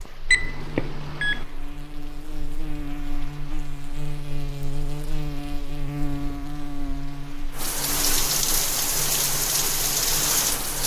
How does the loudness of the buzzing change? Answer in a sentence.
The volume of the buzzing goes up, then down.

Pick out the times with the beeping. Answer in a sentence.
The beeping can be heard from 0.3 to 1.4 s.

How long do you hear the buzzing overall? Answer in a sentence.
You can hear the buzzing for 11 seconds altogether.